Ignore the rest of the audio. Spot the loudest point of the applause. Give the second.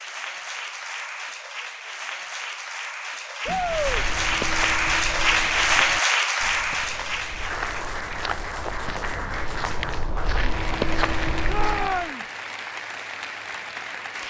6 s.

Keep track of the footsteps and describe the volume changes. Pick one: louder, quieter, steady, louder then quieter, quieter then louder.
quieter then louder.